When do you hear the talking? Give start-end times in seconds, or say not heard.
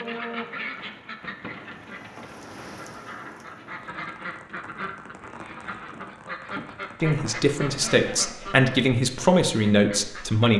7.0-10.5.